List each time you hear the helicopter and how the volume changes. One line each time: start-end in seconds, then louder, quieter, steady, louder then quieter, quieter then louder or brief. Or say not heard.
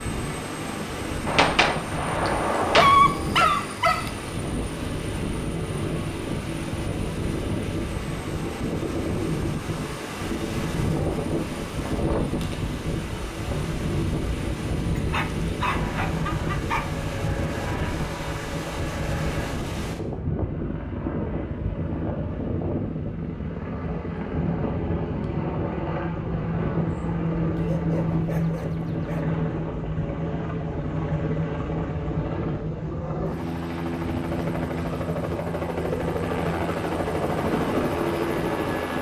0.0-38.9 louder.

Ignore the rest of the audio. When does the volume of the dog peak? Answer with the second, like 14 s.
3 s.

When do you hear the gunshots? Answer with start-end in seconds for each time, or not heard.
1.2-3.0.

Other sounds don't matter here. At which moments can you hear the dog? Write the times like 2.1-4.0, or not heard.
2.8-4.1, 14.9-16.9, 27.6-29.2.